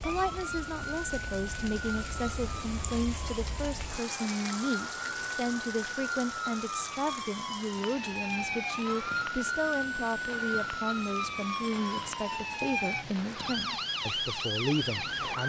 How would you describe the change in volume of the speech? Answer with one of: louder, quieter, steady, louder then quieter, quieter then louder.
steady.